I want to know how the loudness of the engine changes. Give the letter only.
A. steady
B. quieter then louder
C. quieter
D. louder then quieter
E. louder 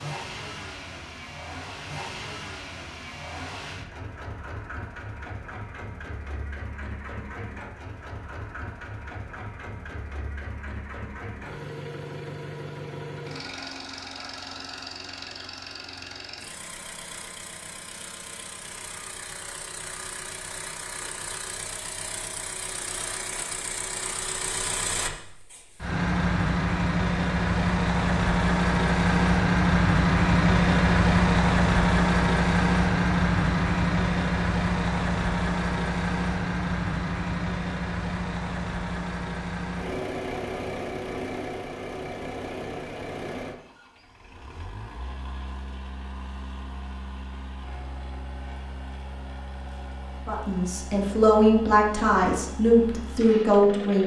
D.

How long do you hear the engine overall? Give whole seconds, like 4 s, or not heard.
54 s.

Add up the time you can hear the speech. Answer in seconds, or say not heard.
4 s.